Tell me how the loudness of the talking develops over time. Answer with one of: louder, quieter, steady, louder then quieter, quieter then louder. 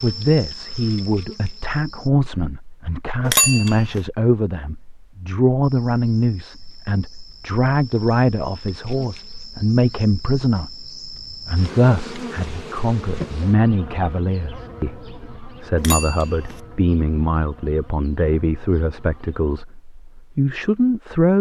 steady.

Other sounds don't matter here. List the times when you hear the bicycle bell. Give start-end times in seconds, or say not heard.
3.2-4.0, 15.8-16.6.